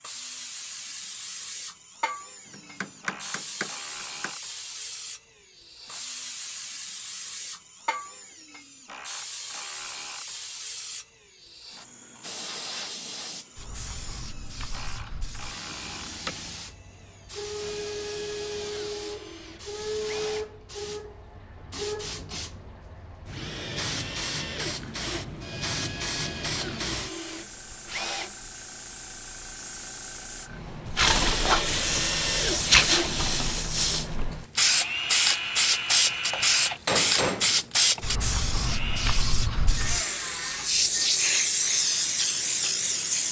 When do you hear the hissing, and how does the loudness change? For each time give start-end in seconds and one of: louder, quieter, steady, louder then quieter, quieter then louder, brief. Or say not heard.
0.0-43.2 louder.